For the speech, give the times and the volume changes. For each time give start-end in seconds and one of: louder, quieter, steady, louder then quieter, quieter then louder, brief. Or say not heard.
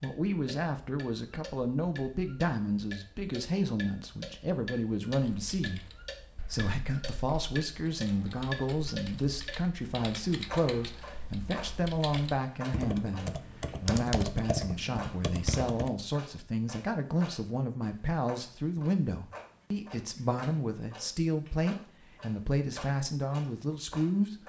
0.0-24.4 steady.